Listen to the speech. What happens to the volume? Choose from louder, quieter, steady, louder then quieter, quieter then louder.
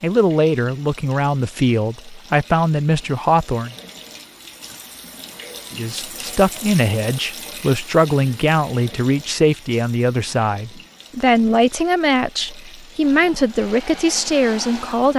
steady.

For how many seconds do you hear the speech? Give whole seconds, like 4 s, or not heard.
13 s.